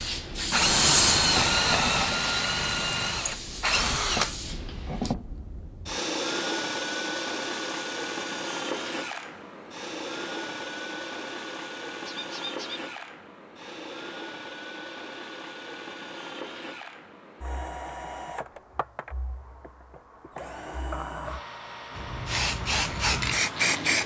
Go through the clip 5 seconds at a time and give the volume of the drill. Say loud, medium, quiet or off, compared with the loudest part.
loud, medium, medium, quiet, quiet.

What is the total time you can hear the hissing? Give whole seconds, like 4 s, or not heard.
7 s.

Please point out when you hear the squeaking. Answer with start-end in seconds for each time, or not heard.
12.1-12.8.